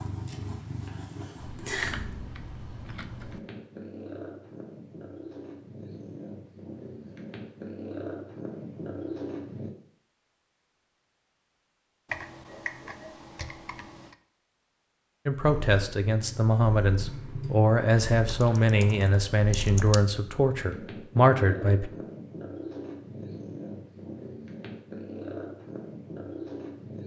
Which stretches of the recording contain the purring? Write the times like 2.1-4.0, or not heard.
0.0-9.7, 15.4-27.0.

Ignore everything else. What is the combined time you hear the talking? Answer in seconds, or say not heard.
7 s.